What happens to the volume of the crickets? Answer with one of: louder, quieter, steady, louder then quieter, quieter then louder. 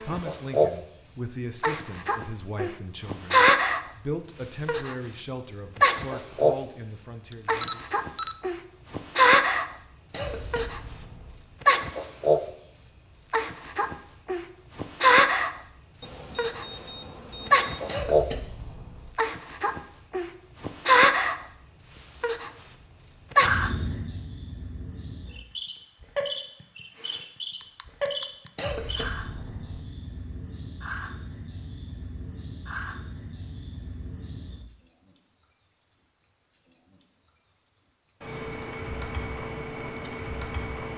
quieter.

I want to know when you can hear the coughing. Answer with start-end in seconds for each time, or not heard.
10.1-11.4, 17.9-19.1, 28.6-29.8.